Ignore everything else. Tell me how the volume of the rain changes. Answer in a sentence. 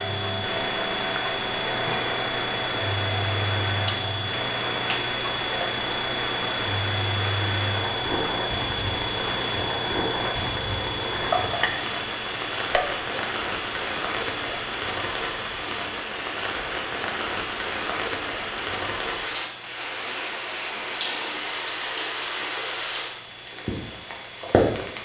The loudness of the rain stays about the same.